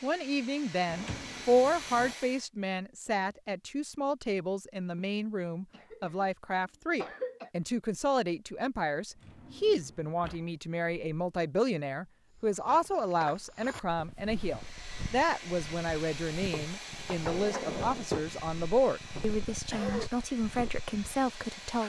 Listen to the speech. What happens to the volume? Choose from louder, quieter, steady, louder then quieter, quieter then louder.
steady.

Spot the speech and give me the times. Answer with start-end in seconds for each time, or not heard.
0.0-21.8.